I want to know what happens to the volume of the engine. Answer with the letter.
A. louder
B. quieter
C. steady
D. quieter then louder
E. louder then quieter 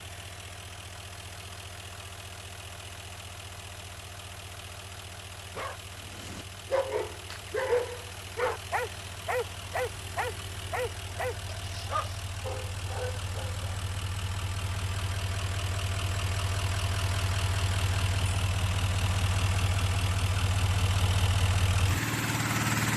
A.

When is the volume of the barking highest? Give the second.
8 s.